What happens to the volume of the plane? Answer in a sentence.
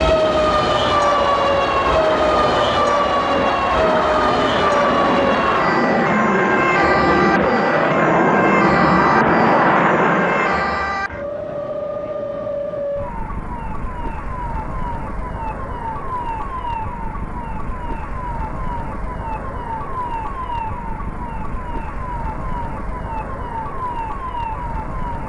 The loudness of the plane goes up.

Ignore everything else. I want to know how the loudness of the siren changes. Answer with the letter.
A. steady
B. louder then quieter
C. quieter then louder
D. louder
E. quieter
E.